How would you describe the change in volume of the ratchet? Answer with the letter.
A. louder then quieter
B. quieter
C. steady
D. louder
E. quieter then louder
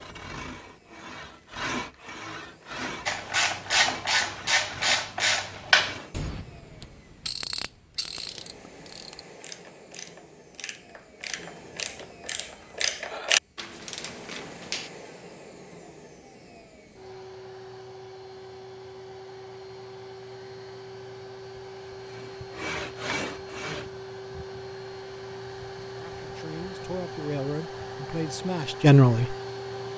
E.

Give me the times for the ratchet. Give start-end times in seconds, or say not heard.
3.0-14.9.